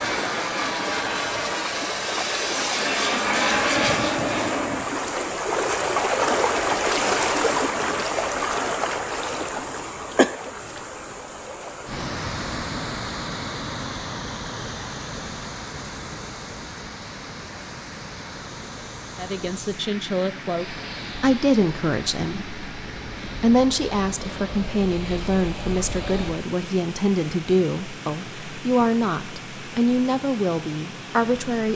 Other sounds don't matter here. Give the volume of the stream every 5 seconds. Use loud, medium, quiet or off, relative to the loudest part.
medium, loud, medium, quiet, quiet, quiet, quiet.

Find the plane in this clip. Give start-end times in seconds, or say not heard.
0.0-4.8, 20.5-26.4.